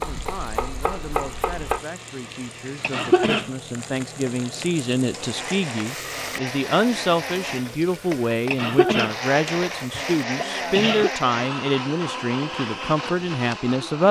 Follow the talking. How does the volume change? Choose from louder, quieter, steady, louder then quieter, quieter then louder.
louder.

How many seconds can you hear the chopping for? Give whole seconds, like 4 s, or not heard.
2 s.